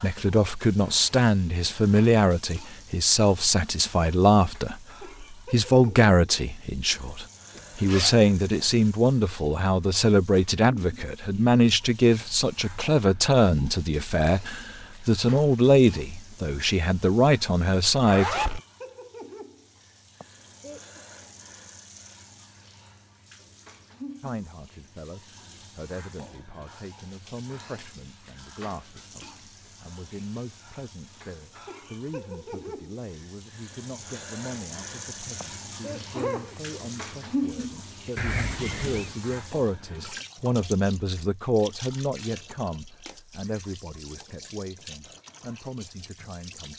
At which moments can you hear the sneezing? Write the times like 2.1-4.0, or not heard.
20.2-21.0, 35.4-36.8.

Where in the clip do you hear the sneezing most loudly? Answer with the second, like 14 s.
36 s.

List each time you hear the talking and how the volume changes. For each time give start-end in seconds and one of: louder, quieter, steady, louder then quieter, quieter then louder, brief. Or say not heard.
0.0-18.6 steady
24.2-46.7 louder then quieter.